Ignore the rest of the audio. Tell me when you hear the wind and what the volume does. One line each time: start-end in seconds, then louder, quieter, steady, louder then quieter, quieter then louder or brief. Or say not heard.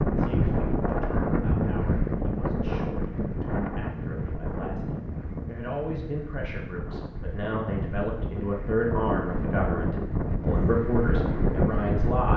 0.0-12.3 quieter then louder.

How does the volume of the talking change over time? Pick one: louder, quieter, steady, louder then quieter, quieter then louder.
louder.